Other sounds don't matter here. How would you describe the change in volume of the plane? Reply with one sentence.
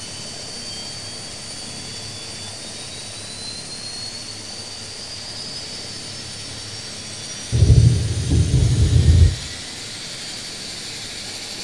The loudness of the plane stays about the same.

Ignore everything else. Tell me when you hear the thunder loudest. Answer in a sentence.
The loudest moment of the thunder is at 8 seconds.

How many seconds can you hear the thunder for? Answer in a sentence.
You can hear the thunder for 2 seconds altogether.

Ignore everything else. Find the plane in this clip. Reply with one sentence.
You can hear the plane from 0.0 to 11.5 s.